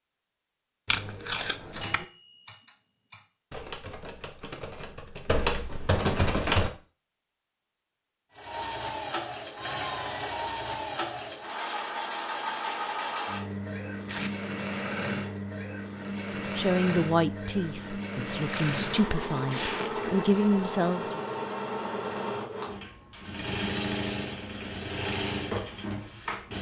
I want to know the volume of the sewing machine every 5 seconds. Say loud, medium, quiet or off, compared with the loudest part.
off, loud, loud, loud, loud, loud.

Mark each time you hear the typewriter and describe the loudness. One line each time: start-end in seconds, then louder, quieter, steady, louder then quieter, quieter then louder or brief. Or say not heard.
1.5-6.7 louder.